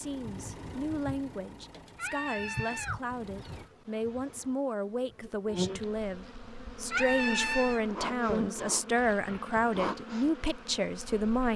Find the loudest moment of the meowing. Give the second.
7 s.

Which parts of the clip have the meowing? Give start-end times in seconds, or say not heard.
1.9-3.6, 6.9-7.8.